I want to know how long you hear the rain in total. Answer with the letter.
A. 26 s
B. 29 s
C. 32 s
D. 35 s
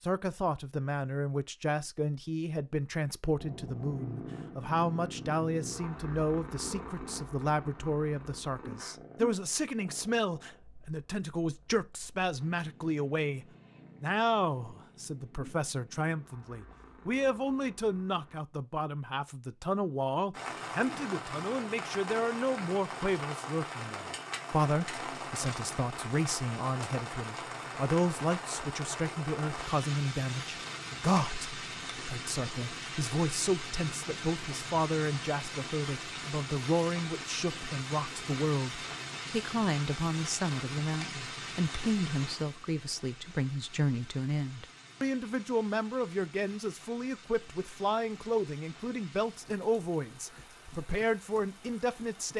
C.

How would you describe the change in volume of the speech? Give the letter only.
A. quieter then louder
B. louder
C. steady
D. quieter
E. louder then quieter
C.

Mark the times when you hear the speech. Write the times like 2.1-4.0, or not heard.
0.0-52.3.